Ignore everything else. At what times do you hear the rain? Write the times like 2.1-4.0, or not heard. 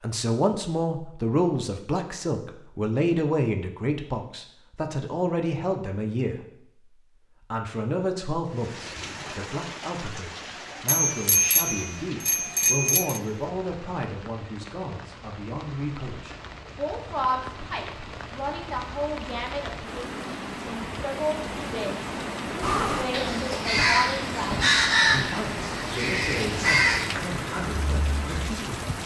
8.4-29.0.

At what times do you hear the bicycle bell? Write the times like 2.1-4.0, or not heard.
10.8-13.2.